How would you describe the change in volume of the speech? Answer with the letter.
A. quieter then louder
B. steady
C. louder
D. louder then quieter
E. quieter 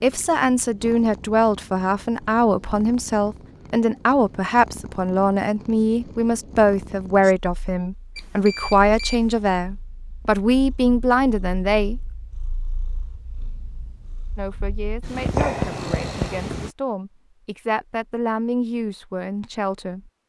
E.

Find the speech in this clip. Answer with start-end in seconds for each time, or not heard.
0.0-12.0, 14.3-20.1.